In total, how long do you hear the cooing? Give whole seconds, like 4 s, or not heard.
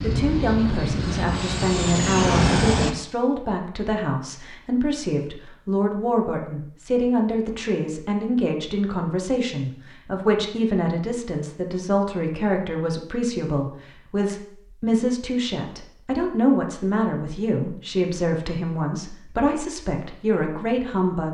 not heard.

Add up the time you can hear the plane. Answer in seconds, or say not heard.
3 s.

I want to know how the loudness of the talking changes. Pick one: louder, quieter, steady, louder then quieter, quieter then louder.
steady.